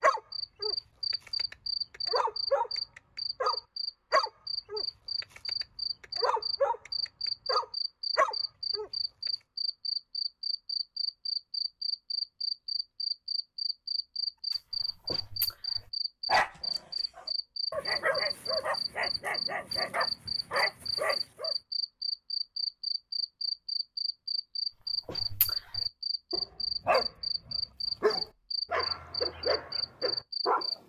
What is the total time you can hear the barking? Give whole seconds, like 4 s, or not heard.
21 s.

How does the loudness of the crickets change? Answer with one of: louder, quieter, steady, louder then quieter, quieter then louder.
steady.